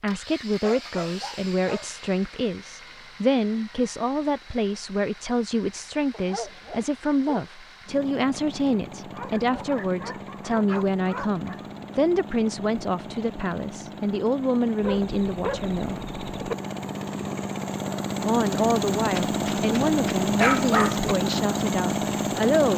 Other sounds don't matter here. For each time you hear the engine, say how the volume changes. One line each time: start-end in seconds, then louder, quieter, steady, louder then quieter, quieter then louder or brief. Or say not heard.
0.1-22.7 louder.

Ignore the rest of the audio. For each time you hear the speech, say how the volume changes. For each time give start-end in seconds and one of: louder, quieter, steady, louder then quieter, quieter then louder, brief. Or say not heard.
0.0-16.0 steady
18.2-22.7 quieter.